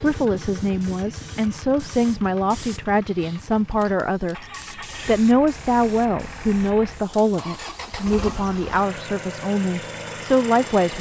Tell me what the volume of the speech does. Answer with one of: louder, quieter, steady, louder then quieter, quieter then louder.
steady.